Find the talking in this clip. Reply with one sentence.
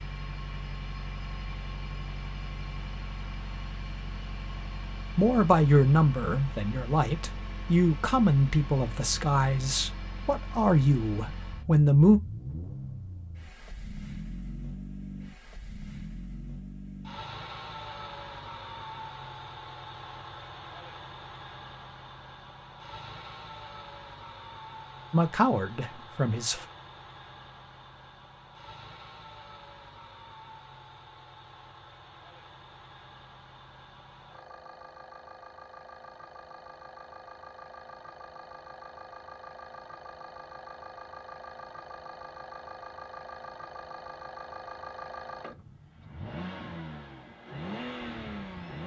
The talking can be heard from 5.2 to 12.2 s and from 25.1 to 26.6 s.